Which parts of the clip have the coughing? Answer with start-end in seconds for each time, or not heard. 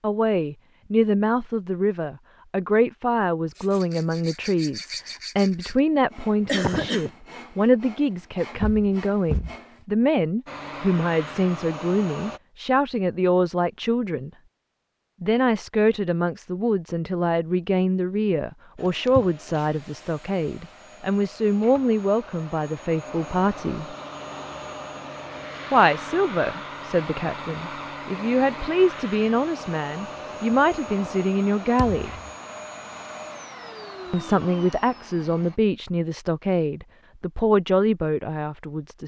6.5-7.1.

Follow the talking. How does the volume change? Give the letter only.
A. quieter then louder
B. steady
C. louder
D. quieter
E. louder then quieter
B.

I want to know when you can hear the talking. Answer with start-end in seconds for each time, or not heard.
0.0-14.3, 15.2-23.9, 25.7-32.1, 34.1-39.0.